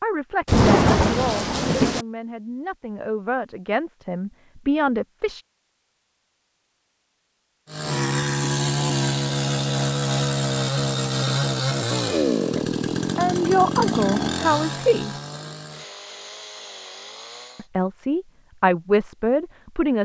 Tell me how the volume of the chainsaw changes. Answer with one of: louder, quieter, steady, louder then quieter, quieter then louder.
quieter.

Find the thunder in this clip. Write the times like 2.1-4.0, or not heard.
0.5-2.0.